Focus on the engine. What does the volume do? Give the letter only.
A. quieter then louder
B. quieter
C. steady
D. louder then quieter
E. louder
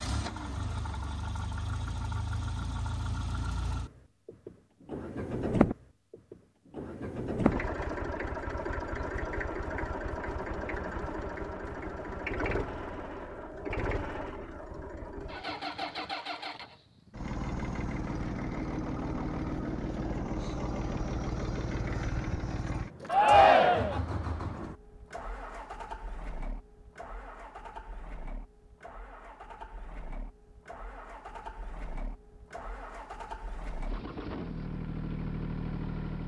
B.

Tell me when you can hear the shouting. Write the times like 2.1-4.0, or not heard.
23.1-24.0.